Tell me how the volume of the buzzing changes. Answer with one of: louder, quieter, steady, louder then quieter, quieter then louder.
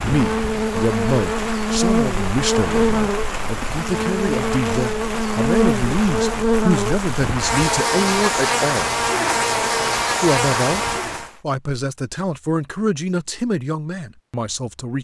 steady.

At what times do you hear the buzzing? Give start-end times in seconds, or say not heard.
0.1-11.3.